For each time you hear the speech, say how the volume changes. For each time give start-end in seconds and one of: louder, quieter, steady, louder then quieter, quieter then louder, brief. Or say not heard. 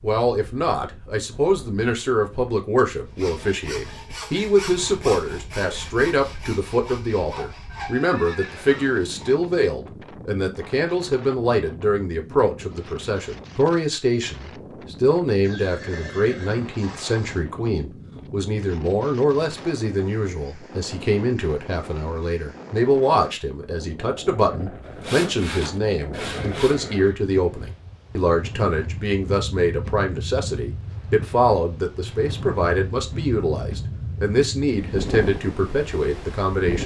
0.0-36.8 steady.